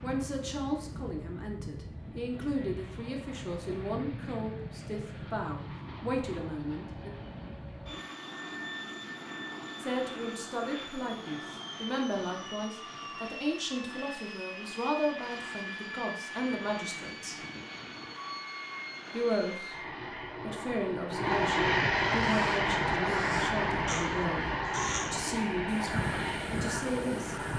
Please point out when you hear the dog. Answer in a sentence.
You can't hear the dog here.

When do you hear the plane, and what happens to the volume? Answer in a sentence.
You can hear the plane from 0.0 to 27.5 s, getting louder.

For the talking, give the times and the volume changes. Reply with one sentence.
The talking can be heard from 0.0 to 7.1 s, at a steady volume; from 9.8 to 17.4 s, at a steady volume; briefly from 19.1 to 19.8 s; and from 20.4 to 27.4 s, at a steady volume.